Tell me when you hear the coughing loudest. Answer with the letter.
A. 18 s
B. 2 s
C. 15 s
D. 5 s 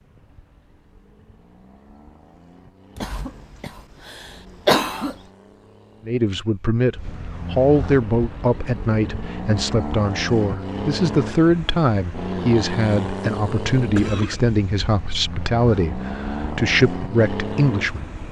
D.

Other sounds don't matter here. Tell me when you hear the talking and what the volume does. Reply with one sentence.
You can hear the talking from 6.0 to 18.1 s, at a steady volume.